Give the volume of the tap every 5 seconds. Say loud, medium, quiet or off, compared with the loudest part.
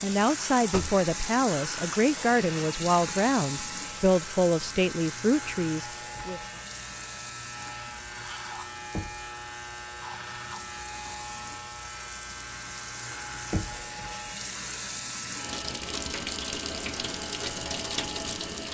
loud, medium, medium, loud.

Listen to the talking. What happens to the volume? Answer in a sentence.
The volume of the talking stays about the same.